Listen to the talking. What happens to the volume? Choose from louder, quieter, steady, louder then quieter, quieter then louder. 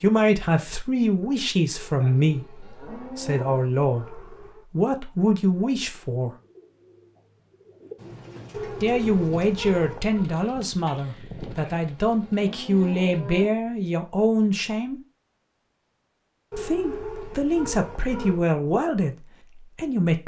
steady.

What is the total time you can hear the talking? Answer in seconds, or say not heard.
16 s.